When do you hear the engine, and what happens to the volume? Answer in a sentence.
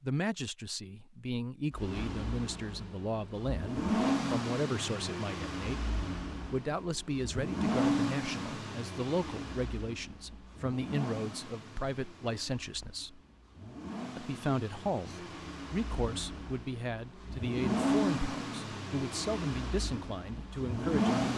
The engine can be heard from 1.7 to 21.3 s, getting quieter then louder.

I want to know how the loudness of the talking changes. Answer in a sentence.
The volume of the talking stays about the same.